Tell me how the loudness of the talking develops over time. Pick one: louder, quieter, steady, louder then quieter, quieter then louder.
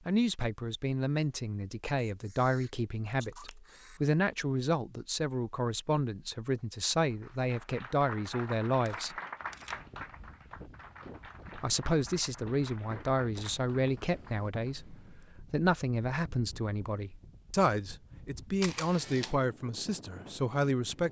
steady.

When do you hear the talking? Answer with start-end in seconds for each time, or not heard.
0.1-9.2, 11.6-21.0.